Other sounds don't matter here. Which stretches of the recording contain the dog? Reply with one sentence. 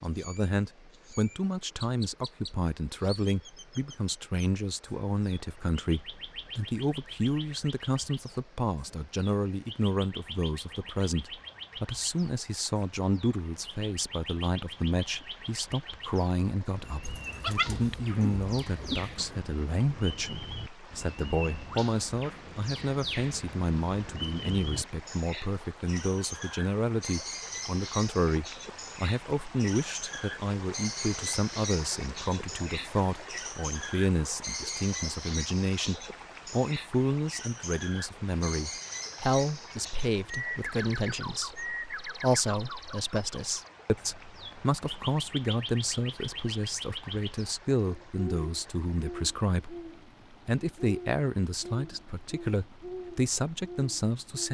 The dog can be heard from 17.0 to 19.4 s.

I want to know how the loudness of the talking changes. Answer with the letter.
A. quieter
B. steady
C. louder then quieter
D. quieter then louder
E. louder
B.